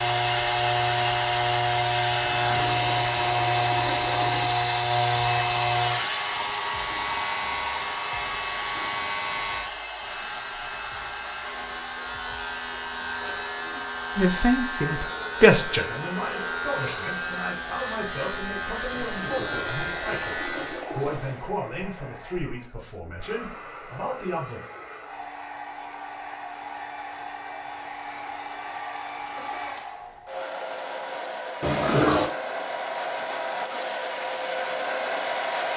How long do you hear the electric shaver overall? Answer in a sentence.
The electric shaver can be heard for 21 seconds in total.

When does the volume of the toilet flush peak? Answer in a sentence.
The loudest moment of the toilet flush is at 32 seconds.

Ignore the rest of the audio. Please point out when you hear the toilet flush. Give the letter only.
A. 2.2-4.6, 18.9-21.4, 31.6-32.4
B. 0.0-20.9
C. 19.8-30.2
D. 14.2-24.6
A.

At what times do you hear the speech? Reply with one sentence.
The speech can be heard from 14.2 to 24.6 s.